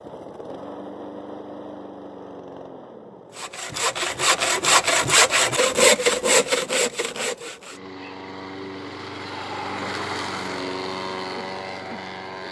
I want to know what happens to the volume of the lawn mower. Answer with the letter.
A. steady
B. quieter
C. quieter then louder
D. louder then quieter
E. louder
C.